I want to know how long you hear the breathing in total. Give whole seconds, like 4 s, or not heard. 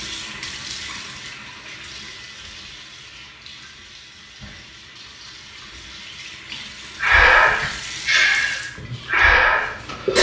3 s.